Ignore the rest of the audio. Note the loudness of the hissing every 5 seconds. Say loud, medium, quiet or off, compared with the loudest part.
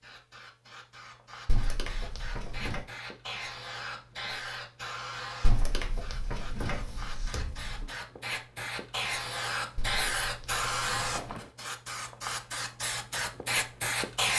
medium, medium, loud.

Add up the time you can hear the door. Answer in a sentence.
You can hear the door for 5 seconds altogether.